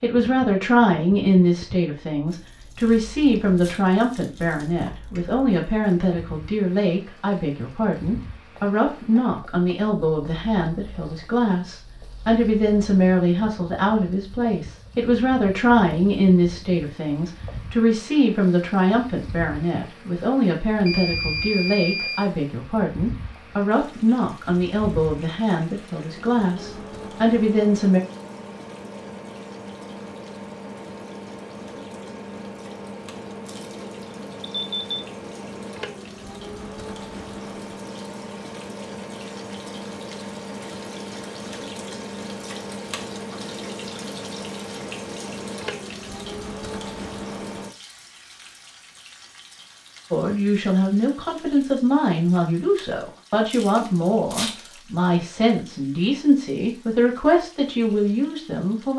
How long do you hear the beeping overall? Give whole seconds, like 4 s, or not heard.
2 s.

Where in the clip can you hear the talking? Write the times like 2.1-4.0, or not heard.
0.0-28.0, 50.1-58.9.